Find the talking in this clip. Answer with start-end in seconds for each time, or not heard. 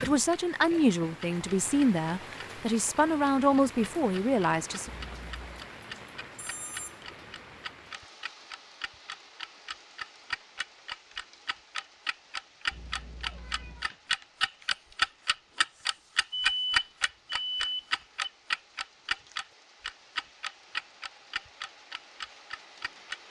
0.0-4.9.